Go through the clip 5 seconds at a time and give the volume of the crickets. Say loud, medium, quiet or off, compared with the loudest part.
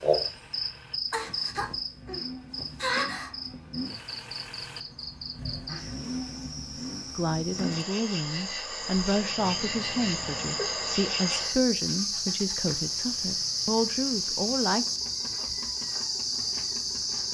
loud, medium, loud, loud.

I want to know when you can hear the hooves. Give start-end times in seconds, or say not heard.
not heard.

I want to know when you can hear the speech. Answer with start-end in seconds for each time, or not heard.
7.2-14.8.